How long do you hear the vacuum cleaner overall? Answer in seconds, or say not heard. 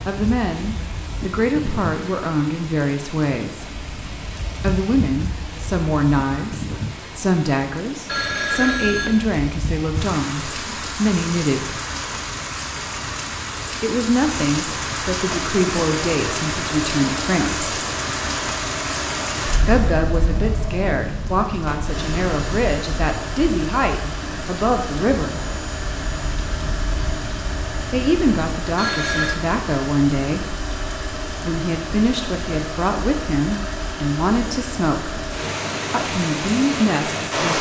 22 s.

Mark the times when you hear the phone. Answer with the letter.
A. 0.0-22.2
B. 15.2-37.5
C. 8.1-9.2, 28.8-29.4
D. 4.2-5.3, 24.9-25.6
C.